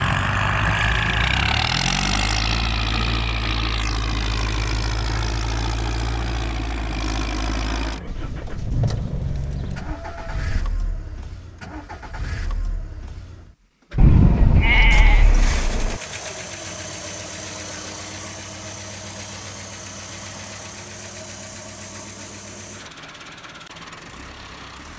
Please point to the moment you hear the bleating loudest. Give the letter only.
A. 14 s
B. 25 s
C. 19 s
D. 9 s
A.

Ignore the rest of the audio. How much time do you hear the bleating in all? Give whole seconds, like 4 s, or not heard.
5 s.